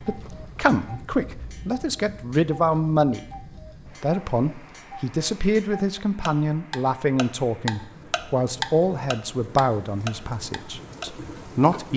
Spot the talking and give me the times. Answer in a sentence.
You can hear the talking from 0.0 to 11.9 s.